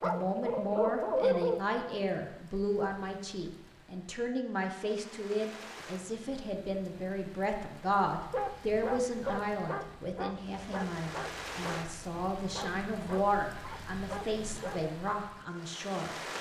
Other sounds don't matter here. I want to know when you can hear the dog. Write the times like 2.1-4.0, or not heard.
0.0-1.6, 8.2-14.9.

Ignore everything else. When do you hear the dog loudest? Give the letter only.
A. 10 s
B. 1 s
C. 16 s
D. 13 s
B.